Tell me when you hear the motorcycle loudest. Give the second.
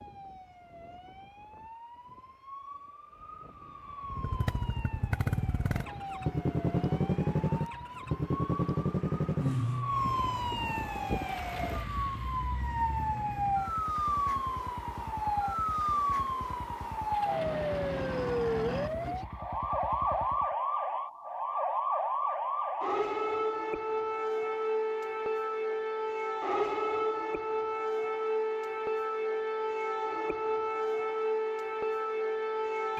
7 s.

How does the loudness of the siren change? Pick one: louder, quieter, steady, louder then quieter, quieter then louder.
louder.